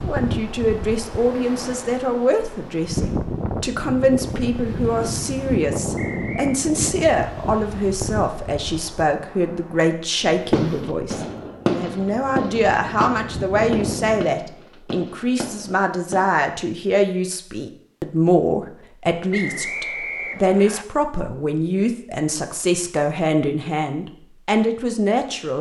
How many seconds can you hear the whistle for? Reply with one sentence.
The whistle can be heard for 2 seconds in total.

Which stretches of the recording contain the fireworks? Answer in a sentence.
The fireworks can be heard from 10.2 to 16.3 s.